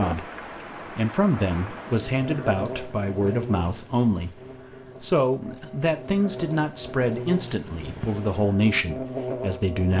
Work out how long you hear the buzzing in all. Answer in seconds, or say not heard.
8 s.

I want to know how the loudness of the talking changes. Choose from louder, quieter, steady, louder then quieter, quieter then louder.
steady.